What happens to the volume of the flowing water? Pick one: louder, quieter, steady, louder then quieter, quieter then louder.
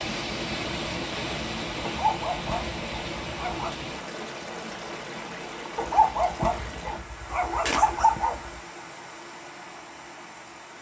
quieter.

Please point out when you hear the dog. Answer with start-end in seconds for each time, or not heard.
1.8-3.8, 5.8-8.5.